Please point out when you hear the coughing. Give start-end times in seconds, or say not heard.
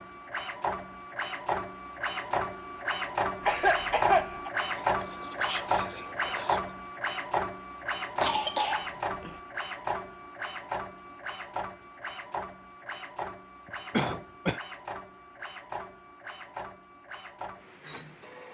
3.4-4.5, 8.2-9.3, 13.9-14.6.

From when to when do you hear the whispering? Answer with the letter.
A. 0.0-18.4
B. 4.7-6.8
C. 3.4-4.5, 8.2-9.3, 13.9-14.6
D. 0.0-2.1
B.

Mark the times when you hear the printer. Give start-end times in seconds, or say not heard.
0.0-18.4.